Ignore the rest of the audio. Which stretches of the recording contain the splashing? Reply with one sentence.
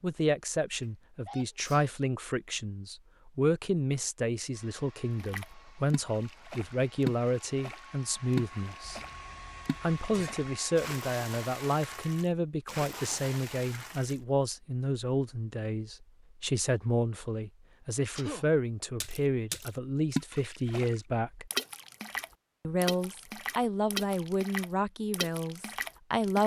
The splashing can be heard from 5.2 to 14.2 s and from 19.0 to 26.4 s.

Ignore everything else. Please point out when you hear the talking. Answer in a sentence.
You can hear the talking from 0.0 to 9.0 s, from 9.8 to 21.5 s and from 22.6 to 26.4 s.